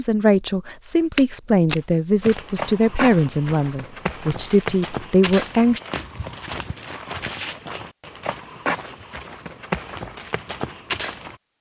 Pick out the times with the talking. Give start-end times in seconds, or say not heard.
0.0-5.8.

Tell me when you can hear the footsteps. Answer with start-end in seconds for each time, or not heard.
1.1-11.3.